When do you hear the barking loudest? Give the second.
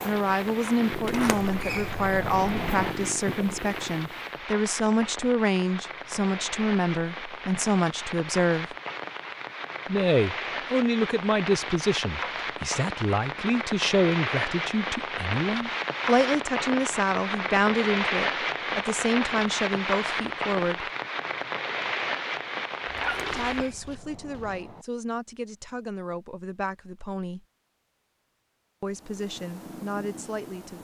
23 s.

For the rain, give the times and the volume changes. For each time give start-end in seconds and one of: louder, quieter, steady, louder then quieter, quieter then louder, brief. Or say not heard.
0.0-23.7 louder.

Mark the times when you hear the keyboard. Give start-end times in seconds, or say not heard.
not heard.